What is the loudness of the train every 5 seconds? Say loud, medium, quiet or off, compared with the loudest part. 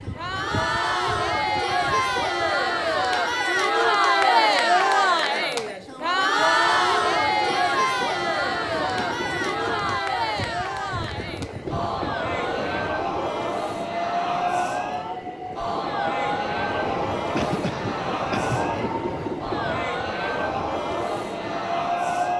medium, medium, loud, loud, loud.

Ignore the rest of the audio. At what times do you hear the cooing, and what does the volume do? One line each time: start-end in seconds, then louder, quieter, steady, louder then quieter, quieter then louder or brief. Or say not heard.
not heard.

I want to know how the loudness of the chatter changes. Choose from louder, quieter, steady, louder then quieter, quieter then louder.
quieter.